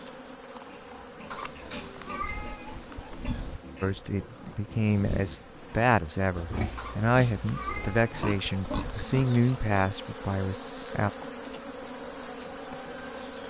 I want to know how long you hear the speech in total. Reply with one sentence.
You can hear the speech for 7 seconds altogether.